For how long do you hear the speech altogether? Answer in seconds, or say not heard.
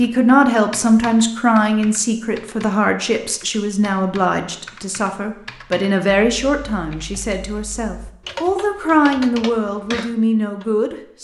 11 s.